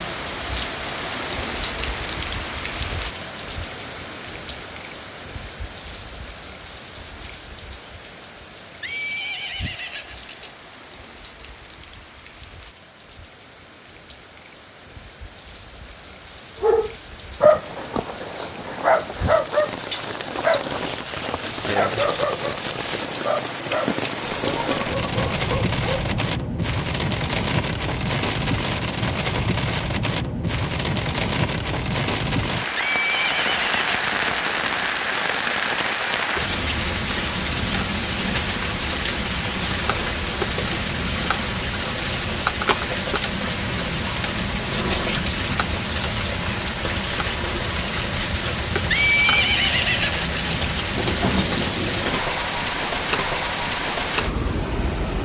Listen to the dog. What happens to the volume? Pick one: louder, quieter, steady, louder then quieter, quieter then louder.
quieter.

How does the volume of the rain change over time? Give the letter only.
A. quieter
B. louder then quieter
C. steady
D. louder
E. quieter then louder
D.